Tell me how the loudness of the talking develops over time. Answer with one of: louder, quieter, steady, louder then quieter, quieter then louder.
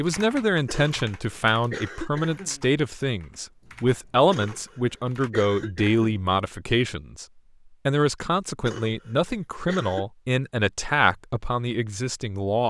steady.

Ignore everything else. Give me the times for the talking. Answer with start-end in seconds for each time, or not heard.
0.0-7.2, 7.8-12.6.